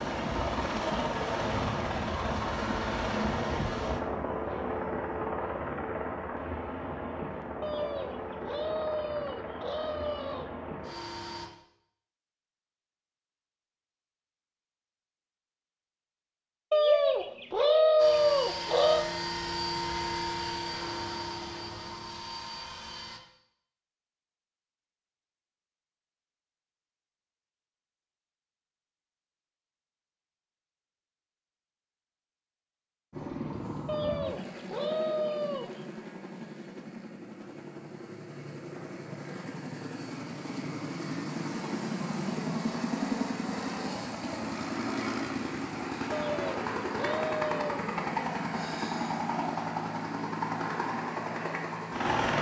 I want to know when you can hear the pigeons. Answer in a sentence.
The pigeons can be heard from 7.6 to 10.6 s, from 16.7 to 19.1 s, from 33.9 to 35.8 s and from 46.1 to 47.8 s.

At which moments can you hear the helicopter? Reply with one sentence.
You can hear the helicopter from 0.0 to 11.5 s, from 17.9 to 23.2 s and from 33.1 to 52.3 s.